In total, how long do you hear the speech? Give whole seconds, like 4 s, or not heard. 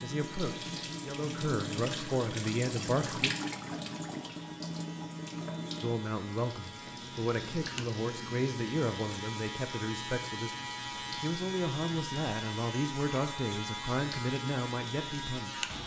13 s.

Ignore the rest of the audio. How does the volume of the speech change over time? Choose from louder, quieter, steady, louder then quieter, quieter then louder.
steady.